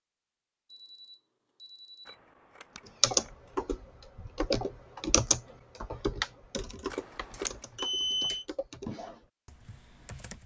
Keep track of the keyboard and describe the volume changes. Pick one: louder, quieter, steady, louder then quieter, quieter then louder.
quieter.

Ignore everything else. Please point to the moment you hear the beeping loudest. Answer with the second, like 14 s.
8 s.